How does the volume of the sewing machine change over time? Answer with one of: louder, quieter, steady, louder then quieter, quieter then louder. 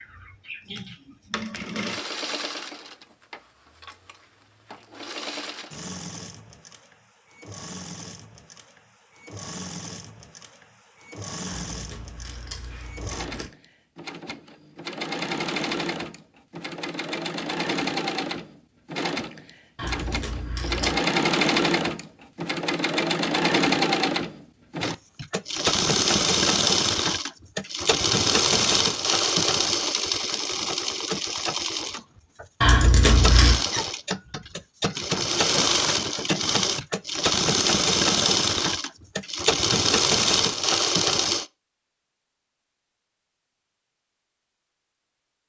louder.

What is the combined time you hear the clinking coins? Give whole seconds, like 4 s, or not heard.
4 s.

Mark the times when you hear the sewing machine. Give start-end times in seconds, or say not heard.
0.0-41.5.